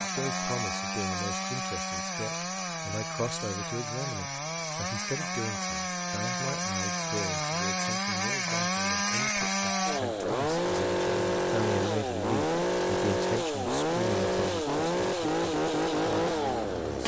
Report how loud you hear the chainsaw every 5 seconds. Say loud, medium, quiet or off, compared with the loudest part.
medium, loud, loud, loud.